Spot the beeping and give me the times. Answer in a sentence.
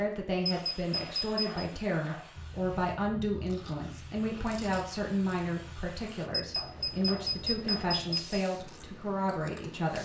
You can hear the beeping from 0.4 to 1.6 s and from 6.3 to 8.4 s.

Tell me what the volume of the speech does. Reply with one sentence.
The loudness of the speech stays about the same.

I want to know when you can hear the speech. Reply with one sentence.
You can hear the speech from 0.0 to 10.0 s.